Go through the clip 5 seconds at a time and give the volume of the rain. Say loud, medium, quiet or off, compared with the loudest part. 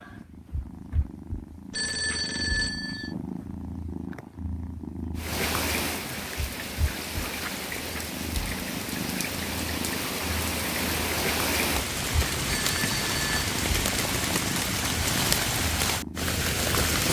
off, medium, loud, loud.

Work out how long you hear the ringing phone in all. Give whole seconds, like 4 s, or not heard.
2 s.